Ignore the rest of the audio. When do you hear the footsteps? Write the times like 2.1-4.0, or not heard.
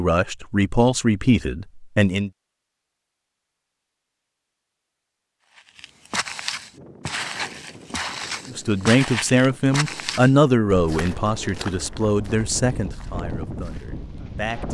5.4-14.3.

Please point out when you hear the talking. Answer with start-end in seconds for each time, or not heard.
0.0-2.3, 8.4-14.6.